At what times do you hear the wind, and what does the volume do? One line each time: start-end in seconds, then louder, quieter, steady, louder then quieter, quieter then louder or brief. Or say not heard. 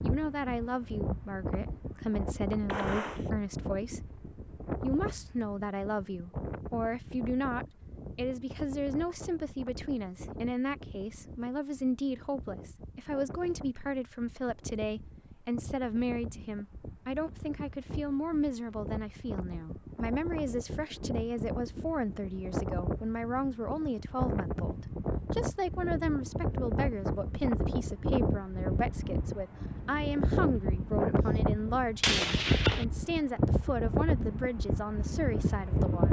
0.0-36.0 quieter then louder.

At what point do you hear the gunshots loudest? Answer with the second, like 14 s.
32 s.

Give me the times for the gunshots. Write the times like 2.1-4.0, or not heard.
2.6-3.3, 32.0-32.9.